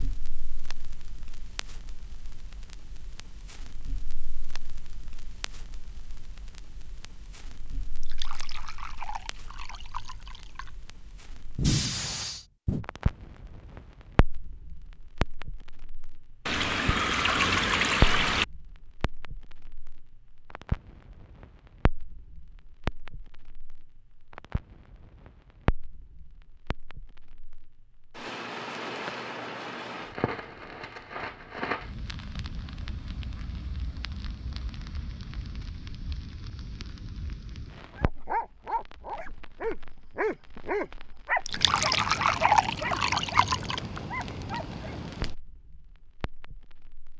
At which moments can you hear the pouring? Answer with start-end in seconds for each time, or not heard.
8.0-10.8, 16.4-18.4, 41.5-43.8.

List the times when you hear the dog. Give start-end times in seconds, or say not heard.
37.9-45.0.